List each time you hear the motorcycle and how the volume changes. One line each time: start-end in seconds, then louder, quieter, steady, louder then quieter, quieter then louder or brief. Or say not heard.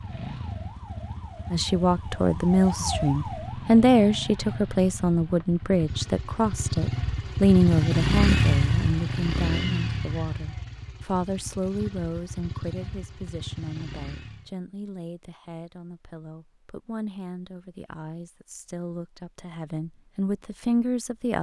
0.0-14.5 louder then quieter.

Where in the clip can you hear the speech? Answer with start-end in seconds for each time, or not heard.
1.5-21.3.